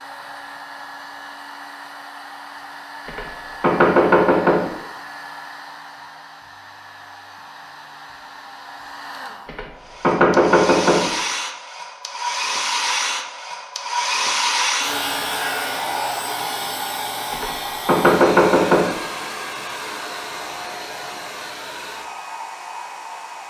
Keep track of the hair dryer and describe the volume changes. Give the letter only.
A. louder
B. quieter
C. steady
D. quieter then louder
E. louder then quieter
E.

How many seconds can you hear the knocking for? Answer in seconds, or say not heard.
5 s.